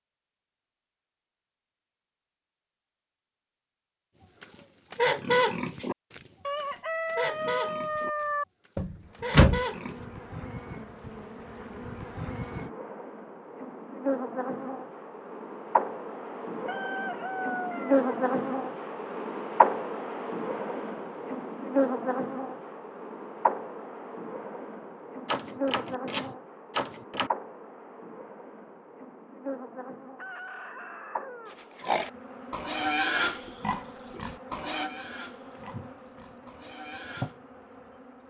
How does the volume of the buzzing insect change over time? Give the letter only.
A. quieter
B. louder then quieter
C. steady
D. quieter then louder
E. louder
B.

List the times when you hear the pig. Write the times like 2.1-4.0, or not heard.
4.4-10.1, 31.5-37.4.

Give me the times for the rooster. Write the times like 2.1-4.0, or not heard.
6.5-8.4, 16.6-18.1, 30.1-31.6.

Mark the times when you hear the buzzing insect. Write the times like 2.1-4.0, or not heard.
9.1-38.2.